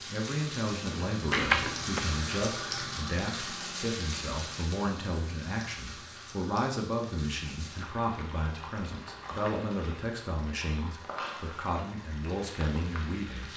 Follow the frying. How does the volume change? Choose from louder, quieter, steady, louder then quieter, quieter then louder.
quieter.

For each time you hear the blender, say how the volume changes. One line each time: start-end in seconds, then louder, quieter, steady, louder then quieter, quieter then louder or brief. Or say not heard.
not heard.